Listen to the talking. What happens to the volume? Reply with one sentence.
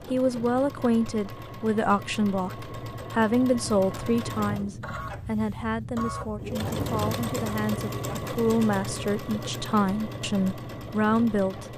The volume of the talking goes down, then up.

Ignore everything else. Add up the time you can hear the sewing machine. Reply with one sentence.
The sewing machine can be heard for 12 seconds in total.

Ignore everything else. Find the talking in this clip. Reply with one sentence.
You can hear the talking from 0.1 to 11.7 s.